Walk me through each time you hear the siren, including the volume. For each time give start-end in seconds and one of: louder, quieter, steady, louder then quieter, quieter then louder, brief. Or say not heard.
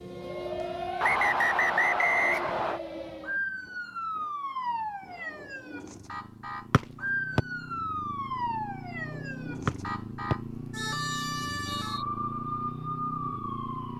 0.0-13.9 steady.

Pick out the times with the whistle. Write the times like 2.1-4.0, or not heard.
1.0-2.8, 6.7-7.4, 9.7-12.1.